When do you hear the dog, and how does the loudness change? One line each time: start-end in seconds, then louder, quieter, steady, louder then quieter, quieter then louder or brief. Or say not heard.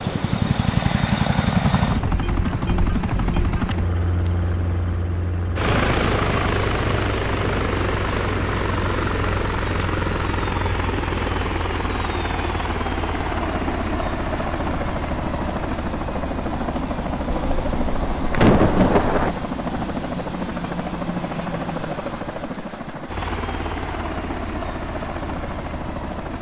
not heard.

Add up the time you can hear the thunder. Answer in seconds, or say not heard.
2 s.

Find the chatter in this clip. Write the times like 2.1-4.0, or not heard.
not heard.